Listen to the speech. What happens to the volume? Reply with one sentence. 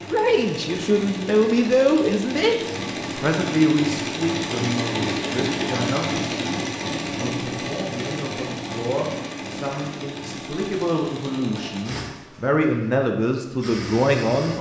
The volume of the speech goes down, then up.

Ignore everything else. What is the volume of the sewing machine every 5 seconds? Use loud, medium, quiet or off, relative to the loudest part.
loud, loud, medium.